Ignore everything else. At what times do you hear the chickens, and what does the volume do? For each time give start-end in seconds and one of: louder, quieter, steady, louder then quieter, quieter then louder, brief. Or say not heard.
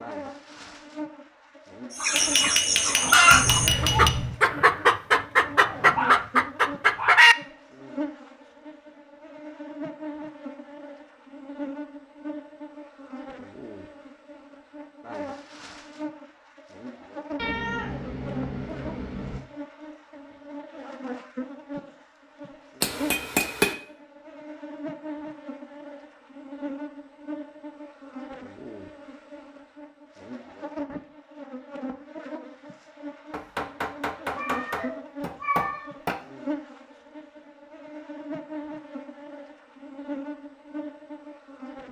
1.9-7.3 steady.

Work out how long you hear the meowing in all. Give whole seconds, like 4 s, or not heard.
5 s.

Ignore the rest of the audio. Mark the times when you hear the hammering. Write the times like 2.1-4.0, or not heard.
2.1-4.1, 22.8-23.8, 33.3-36.2.